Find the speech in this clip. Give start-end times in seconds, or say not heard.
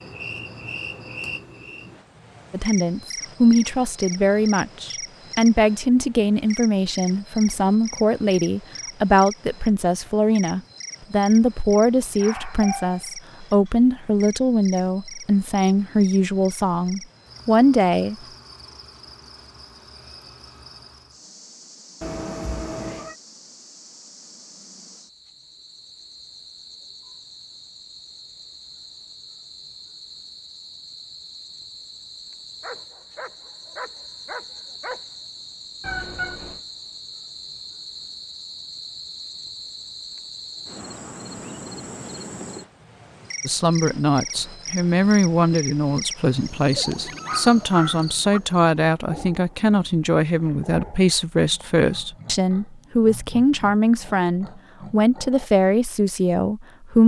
2.5-18.1, 43.5-57.0.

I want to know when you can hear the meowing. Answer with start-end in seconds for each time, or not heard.
22.0-23.1, 35.8-36.6.